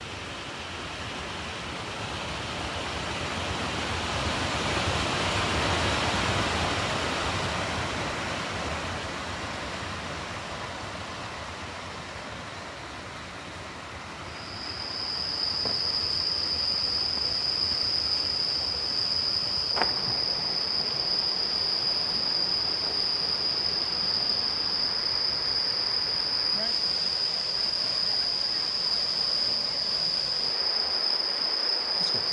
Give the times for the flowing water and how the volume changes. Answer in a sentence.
The flowing water can be heard from 0.0 to 32.2 s, getting quieter.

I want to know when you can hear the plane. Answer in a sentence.
You can't hear the plane here.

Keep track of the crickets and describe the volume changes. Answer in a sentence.
The loudness of the crickets stays about the same.